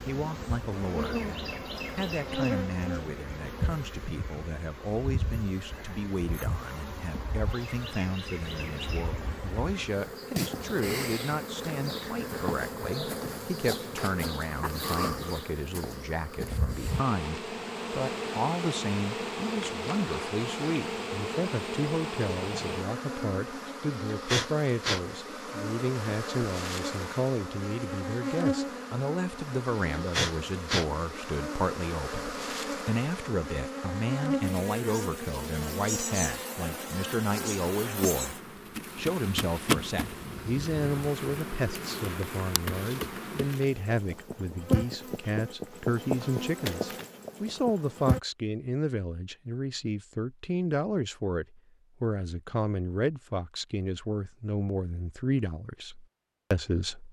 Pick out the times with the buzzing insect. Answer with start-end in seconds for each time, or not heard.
0.0-48.2.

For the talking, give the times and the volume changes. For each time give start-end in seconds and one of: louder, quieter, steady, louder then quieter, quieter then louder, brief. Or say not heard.
0.1-38.4 steady
39.0-57.0 steady.